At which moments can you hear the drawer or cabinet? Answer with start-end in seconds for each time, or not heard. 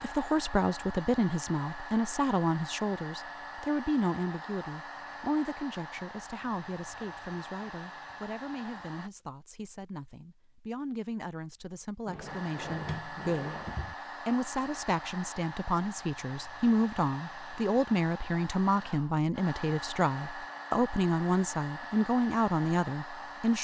12.1-13.9.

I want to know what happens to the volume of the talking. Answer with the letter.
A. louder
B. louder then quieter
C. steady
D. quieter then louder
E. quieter
D.